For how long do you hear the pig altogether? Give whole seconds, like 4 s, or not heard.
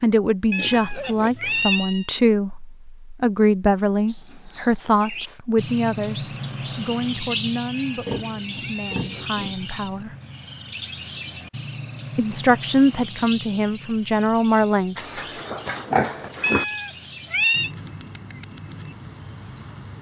4 s.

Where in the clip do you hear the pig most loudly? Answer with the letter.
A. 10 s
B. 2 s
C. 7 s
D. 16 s
D.